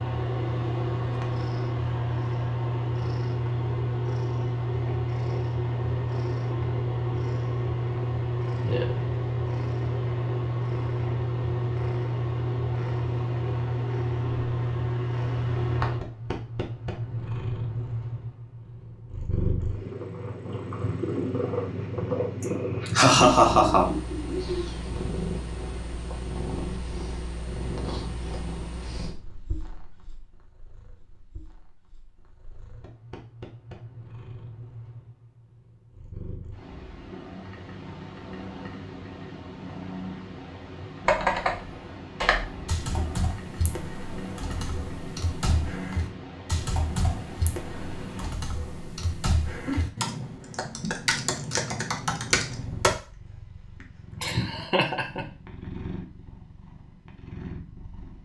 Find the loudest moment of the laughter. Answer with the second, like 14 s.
23 s.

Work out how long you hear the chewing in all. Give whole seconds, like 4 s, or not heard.
not heard.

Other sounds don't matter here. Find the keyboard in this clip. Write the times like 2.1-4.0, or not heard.
41.0-52.9.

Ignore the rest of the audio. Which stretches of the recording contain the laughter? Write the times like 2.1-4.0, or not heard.
22.4-24.6, 54.2-55.2.